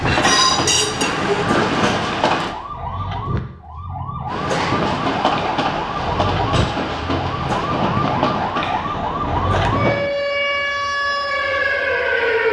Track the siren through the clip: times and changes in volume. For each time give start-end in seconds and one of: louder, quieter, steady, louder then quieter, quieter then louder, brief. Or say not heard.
0.0-12.4 louder.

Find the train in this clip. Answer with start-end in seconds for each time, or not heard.
0.0-2.5, 4.2-10.1.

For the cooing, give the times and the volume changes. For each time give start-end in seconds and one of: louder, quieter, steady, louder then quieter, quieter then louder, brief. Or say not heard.
not heard.